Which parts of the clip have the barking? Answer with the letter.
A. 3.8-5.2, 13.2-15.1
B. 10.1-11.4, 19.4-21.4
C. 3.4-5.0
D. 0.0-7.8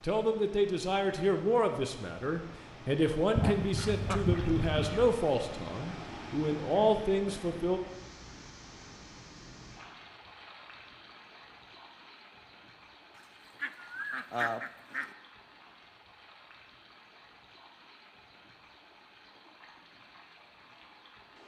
C.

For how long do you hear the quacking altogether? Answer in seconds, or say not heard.
3 s.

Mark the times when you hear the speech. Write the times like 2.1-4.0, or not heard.
0.0-7.8.